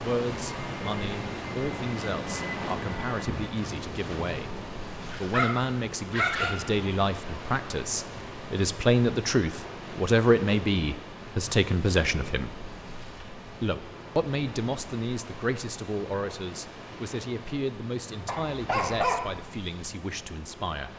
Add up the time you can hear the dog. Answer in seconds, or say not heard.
3 s.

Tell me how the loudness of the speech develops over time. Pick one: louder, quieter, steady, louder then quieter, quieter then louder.
louder then quieter.